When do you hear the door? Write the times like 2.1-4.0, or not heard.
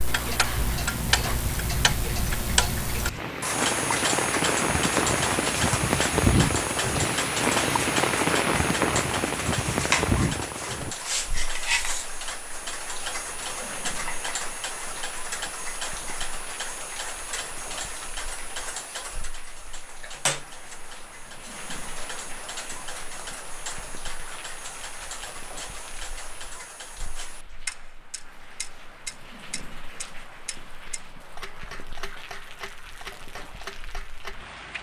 not heard.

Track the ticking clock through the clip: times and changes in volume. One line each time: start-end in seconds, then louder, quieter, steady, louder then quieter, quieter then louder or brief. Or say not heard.
0.0-34.5 quieter.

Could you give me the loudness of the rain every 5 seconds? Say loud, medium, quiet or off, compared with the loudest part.
medium, loud, medium, quiet, quiet, quiet, quiet.